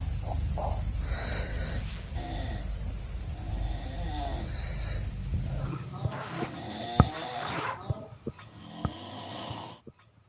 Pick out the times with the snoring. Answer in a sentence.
You can hear the snoring from 2.1 to 9.8 s.